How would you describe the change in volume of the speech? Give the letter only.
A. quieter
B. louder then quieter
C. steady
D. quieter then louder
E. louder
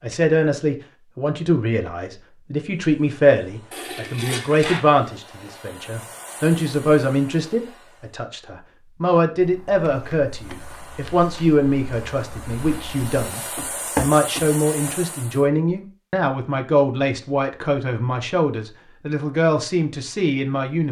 C.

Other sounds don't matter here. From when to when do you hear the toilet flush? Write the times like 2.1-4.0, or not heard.
3.7-4.8.